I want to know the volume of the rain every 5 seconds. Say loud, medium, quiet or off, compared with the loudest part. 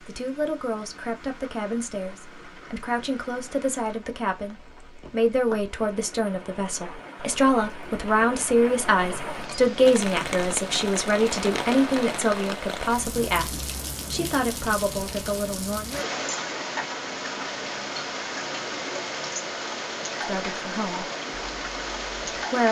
quiet, medium, loud, loud, loud.